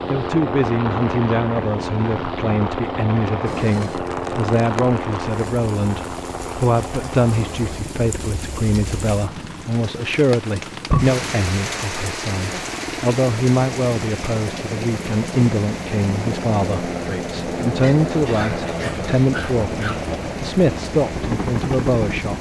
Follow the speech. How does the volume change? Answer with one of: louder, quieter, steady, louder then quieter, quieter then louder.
steady.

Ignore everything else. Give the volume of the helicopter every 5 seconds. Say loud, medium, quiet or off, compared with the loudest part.
loud, medium, medium, loud, loud.